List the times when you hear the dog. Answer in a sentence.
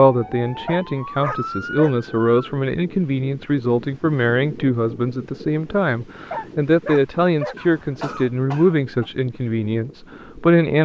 The dog can be heard from 0.7 to 1.9 s and from 6.3 to 7.5 s.